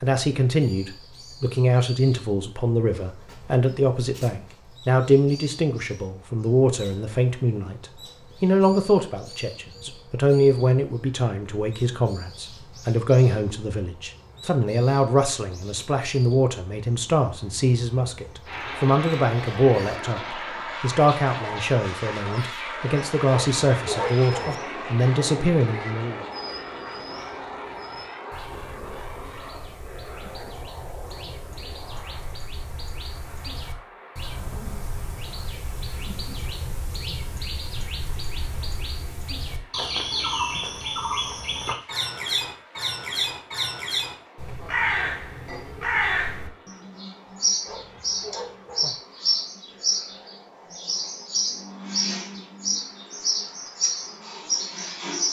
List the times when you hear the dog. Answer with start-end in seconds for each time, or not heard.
23.2-24.6, 47.6-49.0.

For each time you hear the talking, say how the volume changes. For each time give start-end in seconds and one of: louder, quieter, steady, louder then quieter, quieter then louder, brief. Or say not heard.
0.0-26.2 steady.